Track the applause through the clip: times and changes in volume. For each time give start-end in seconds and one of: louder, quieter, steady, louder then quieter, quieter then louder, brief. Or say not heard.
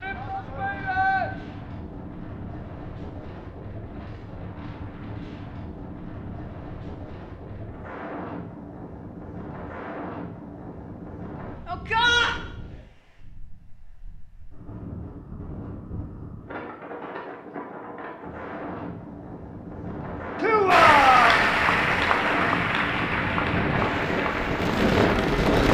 20.7-25.6 quieter.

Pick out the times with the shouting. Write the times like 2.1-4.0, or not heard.
0.0-1.3, 11.7-12.4, 20.4-21.4.